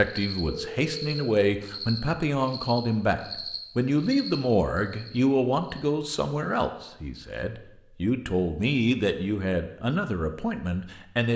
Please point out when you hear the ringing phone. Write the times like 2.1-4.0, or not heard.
0.5-1.2.